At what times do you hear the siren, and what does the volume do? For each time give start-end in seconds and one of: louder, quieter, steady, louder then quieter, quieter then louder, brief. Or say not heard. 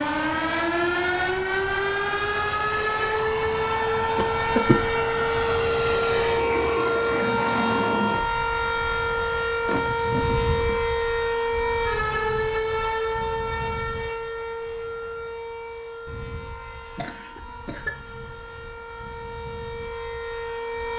0.0-20.9 quieter.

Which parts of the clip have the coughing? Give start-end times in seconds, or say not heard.
4.2-4.8, 9.7-10.8, 16.9-17.9.